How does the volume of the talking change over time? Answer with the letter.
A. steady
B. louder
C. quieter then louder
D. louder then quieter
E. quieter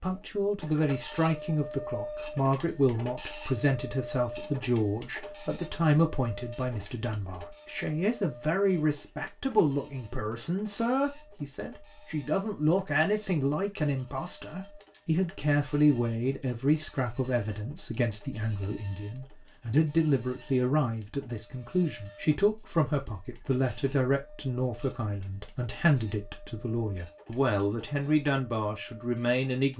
A.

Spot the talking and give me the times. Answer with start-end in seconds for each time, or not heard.
0.0-29.7.